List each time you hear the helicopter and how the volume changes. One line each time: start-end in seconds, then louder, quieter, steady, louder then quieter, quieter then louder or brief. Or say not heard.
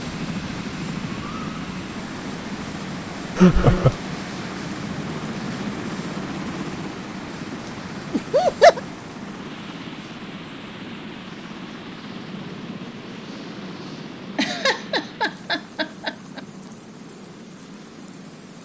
0.0-18.6 quieter.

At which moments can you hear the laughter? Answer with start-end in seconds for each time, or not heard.
3.4-4.0, 8.1-8.8, 14.3-16.4.